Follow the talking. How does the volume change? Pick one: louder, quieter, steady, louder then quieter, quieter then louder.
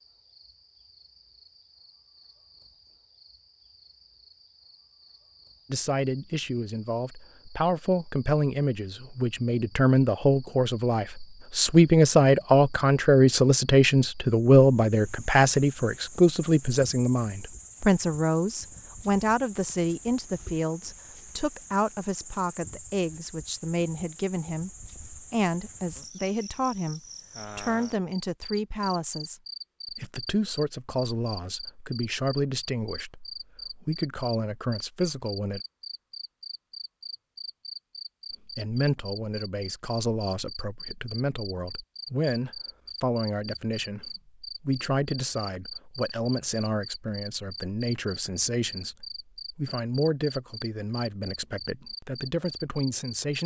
quieter.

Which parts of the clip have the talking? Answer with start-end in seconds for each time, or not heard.
5.7-35.6, 38.5-53.4.